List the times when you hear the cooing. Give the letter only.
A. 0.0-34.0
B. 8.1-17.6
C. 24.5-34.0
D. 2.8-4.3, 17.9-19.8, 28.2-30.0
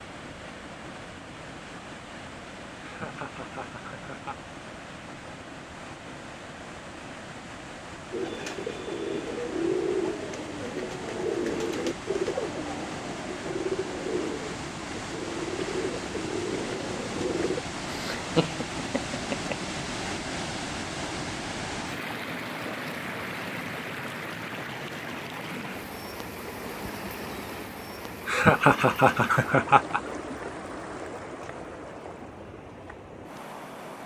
B.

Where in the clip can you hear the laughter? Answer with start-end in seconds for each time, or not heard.
2.8-4.3, 17.9-19.8, 28.2-30.0.